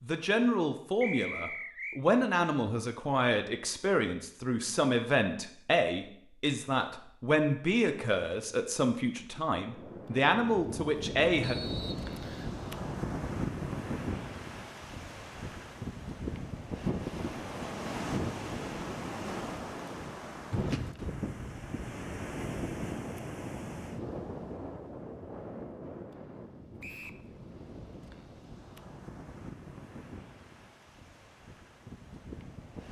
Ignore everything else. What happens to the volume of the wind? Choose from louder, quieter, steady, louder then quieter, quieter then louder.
quieter.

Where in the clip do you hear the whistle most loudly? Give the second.
1 s.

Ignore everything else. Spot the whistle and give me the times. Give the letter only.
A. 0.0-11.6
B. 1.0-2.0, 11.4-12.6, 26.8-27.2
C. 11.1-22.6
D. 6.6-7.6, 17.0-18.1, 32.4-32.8
B.